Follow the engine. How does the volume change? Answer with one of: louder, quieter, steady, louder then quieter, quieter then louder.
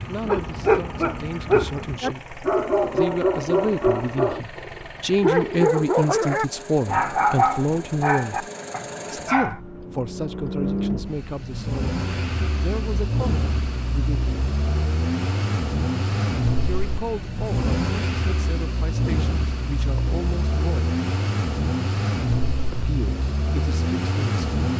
louder.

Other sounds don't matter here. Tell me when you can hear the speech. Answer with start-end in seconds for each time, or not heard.
0.1-8.5, 9.1-14.3, 16.6-20.9, 22.7-24.4.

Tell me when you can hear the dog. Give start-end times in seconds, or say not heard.
0.0-9.6.